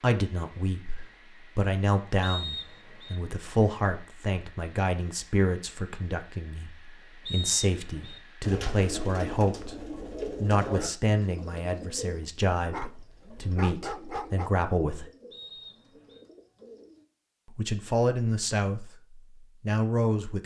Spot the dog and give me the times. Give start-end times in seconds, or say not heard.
12.7-14.5.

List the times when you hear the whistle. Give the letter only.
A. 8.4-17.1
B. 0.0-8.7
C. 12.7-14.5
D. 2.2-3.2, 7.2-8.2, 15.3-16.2
D.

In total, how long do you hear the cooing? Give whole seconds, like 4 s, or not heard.
9 s.